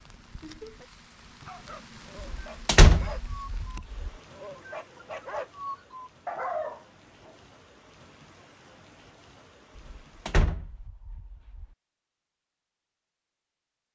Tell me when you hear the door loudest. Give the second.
3 s.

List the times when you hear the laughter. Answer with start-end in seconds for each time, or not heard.
0.4-0.9.